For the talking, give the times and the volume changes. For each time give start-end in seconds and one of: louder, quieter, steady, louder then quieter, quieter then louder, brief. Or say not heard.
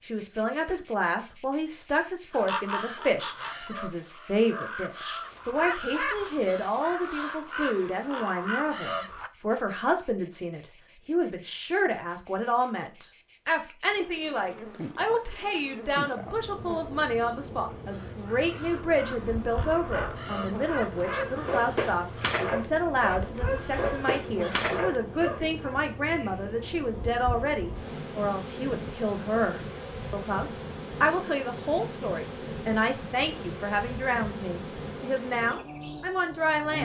0.1-36.8 steady.